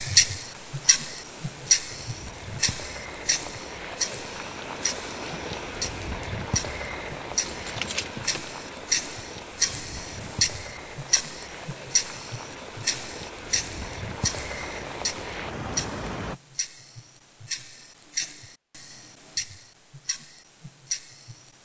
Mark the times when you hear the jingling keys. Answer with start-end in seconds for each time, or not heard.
7.4-8.4.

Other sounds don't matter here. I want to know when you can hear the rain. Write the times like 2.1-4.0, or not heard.
0.0-16.4.